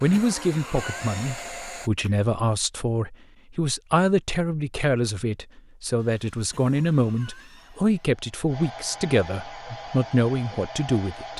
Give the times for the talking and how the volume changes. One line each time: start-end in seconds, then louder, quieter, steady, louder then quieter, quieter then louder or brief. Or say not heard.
0.0-11.3 steady.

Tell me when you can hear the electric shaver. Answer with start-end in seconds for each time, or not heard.
not heard.